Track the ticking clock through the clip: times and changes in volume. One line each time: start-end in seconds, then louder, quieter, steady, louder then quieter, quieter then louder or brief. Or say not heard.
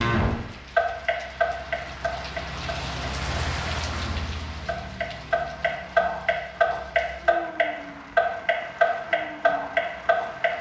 0.0-10.5 quieter then louder.